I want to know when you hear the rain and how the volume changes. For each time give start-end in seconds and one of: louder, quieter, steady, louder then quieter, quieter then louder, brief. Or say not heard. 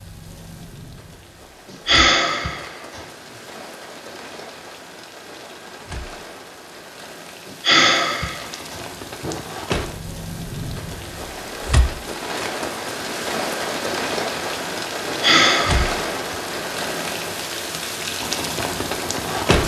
0.0-19.6 louder.